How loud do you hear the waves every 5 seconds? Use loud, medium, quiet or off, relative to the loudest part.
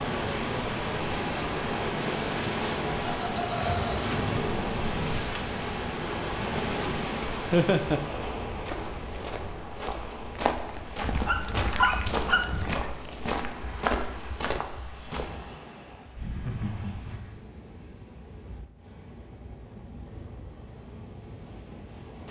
loud, loud, quiet, quiet, quiet.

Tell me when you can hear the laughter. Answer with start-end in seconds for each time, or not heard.
3.0-4.2, 7.5-8.0, 16.1-17.4.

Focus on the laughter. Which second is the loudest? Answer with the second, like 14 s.
8 s.